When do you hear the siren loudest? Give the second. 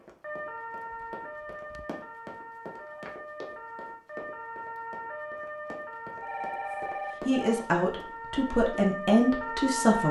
10 s.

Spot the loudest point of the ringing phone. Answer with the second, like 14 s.
7 s.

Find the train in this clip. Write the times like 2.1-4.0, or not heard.
not heard.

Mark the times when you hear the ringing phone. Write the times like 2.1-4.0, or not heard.
0.9-1.9, 6.2-7.7.